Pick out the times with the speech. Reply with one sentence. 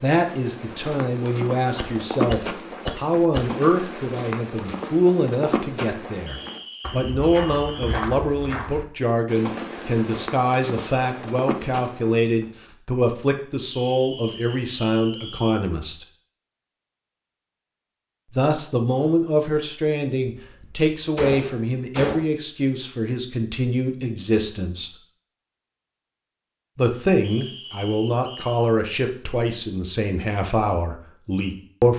You can hear the speech from 0.0 to 16.1 s, from 18.3 to 24.9 s and from 26.8 to 31.9 s.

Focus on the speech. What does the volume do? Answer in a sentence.
The loudness of the speech stays about the same.